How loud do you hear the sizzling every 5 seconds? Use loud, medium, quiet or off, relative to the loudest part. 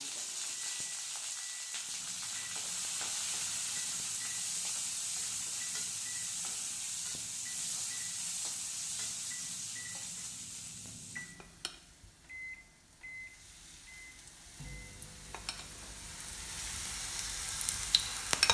loud, loud, quiet, loud.